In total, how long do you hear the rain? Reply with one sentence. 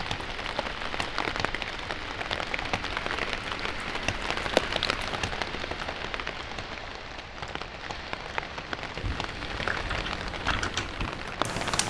You can hear the rain for 12 seconds altogether.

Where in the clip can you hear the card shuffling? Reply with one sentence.
You can't hear the card shuffling here.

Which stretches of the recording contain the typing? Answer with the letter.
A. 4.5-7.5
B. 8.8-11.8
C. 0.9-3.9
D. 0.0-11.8
B.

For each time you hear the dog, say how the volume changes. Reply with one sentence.
You can't hear the dog here.